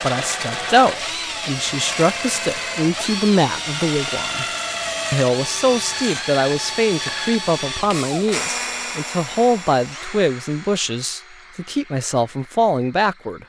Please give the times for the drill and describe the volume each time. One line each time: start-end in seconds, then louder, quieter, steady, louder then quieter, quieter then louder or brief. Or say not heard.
0.0-13.4 quieter.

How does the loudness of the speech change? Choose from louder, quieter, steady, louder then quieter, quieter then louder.
steady.